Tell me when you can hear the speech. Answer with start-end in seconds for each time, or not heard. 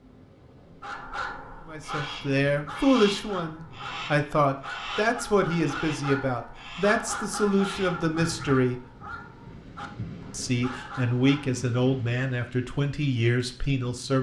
1.6-8.8, 10.3-14.1.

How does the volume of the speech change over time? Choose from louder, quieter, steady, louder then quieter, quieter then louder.
steady.